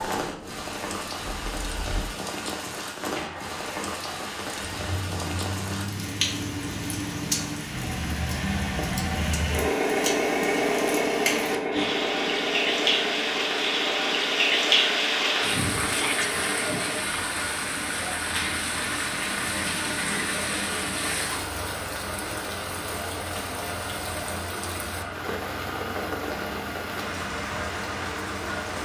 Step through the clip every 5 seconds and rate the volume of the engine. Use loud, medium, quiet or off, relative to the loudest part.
medium, loud, loud, medium, medium, medium.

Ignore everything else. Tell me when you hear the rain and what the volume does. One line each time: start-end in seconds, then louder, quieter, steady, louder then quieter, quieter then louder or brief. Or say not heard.
0.0-28.8 louder then quieter.